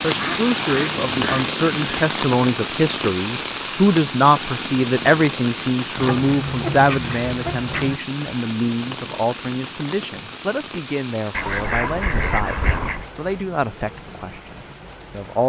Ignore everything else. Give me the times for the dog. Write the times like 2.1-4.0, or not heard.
not heard.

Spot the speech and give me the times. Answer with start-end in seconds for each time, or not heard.
0.0-15.4.